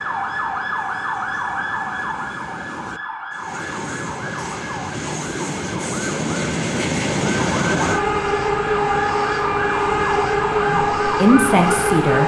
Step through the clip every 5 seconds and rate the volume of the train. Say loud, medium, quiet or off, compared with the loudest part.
quiet, loud, loud.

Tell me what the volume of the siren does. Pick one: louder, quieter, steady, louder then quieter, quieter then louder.
quieter then louder.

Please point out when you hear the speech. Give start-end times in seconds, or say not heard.
10.7-12.2.